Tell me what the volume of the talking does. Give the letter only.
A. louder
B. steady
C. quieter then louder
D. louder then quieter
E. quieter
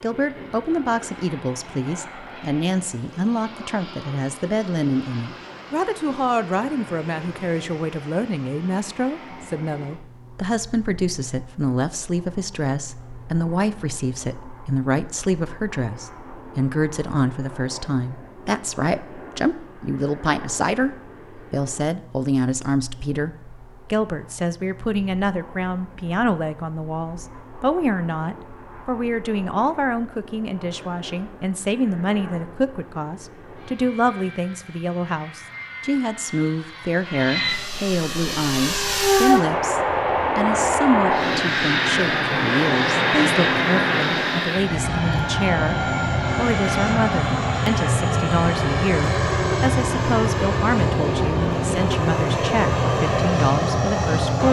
B.